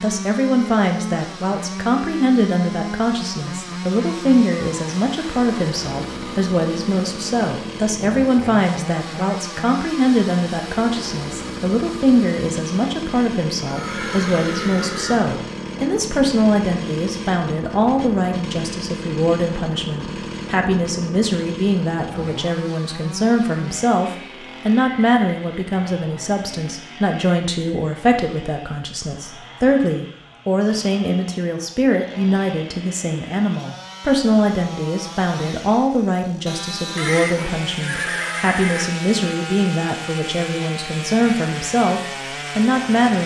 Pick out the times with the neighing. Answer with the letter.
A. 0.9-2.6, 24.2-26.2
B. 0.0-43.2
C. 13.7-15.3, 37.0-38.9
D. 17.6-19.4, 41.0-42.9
C.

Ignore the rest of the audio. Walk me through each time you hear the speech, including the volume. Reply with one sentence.
The speech can be heard from 0.0 to 43.2 s, at a steady volume.